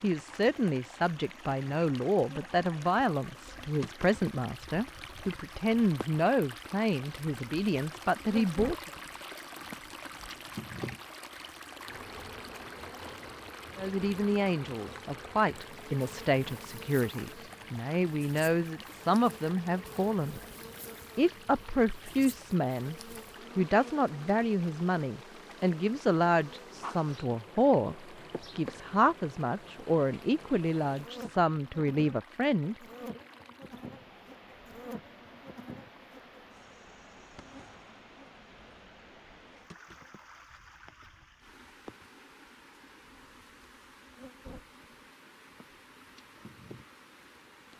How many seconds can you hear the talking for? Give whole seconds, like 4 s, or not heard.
27 s.